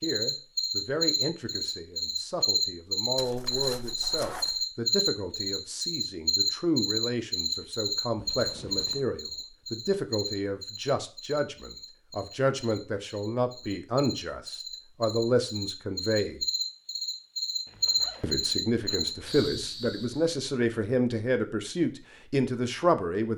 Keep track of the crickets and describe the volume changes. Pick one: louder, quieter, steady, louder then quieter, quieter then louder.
quieter then louder.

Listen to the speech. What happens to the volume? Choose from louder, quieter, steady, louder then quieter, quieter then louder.
louder.